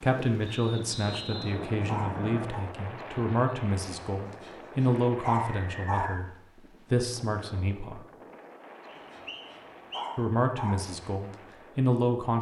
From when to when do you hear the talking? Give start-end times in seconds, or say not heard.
0.0-8.1, 10.2-12.3.